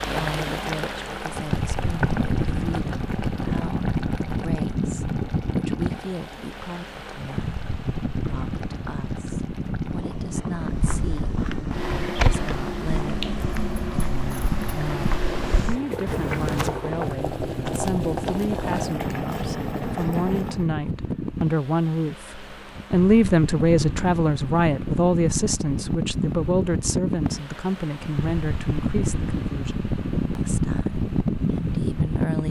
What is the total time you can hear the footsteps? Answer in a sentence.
You can hear the footsteps for 6 seconds altogether.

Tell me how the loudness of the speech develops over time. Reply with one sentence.
The loudness of the speech goes up, then down.